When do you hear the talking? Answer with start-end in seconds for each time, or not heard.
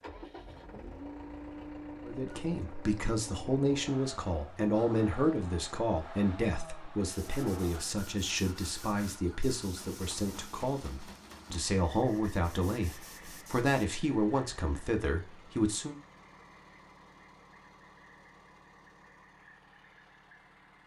2.0-15.9.